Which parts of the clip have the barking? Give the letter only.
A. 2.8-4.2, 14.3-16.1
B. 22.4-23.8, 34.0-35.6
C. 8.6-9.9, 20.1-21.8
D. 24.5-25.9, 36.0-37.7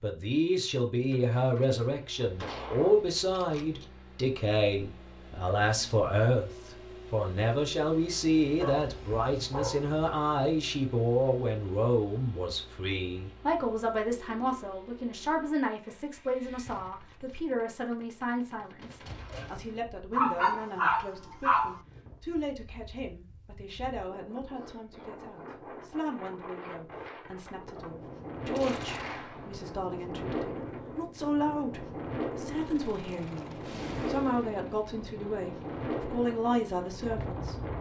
C.